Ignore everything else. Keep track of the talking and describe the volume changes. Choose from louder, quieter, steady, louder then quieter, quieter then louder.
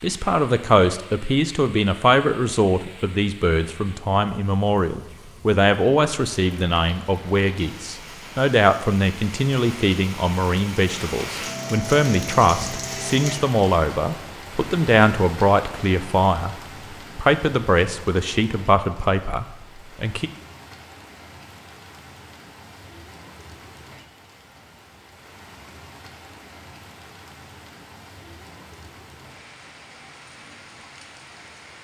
steady.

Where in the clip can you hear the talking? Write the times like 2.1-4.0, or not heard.
0.0-16.6, 17.1-20.3.